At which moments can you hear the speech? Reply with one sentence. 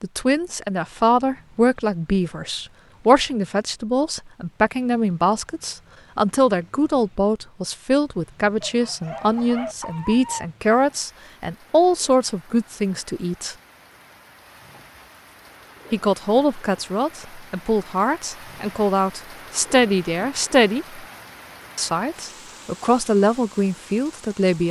The speech can be heard from 0.0 to 13.6 s, from 15.9 to 21.0 s and from 21.8 to 24.6 s.